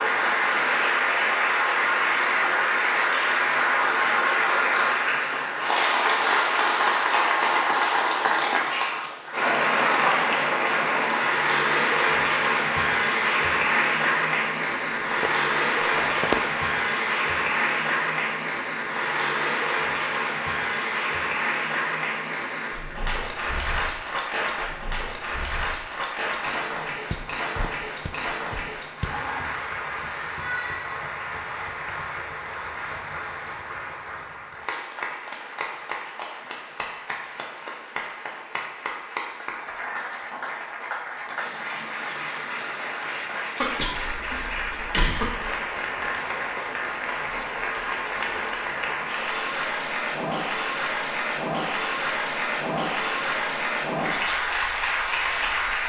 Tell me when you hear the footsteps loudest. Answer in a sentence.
The loudest moment of the footsteps is at 16 seconds.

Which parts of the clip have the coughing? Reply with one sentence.
You can hear the coughing from 43.6 to 45.5 s.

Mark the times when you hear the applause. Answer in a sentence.
The applause can be heard from 0.0 to 55.8 s.